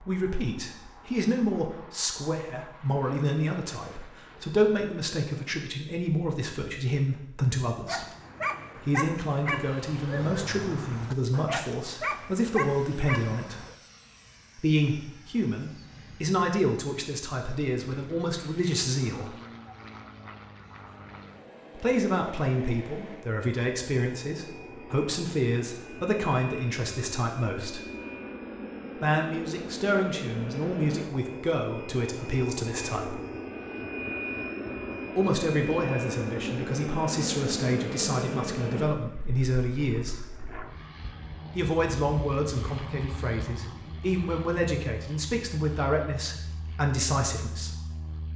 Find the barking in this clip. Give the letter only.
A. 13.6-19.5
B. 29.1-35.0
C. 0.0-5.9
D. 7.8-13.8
D.